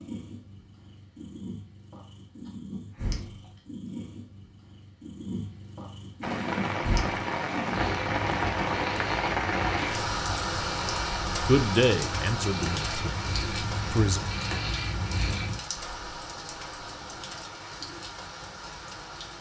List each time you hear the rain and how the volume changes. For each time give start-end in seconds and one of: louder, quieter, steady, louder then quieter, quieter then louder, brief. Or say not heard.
6.2-19.3 quieter.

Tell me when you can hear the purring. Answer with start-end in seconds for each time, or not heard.
0.0-15.6.